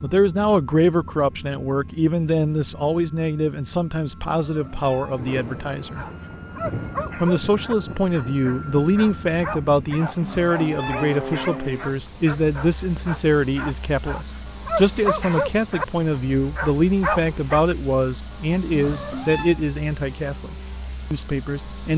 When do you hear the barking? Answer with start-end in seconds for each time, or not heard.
5.9-17.4.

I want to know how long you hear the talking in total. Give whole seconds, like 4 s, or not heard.
21 s.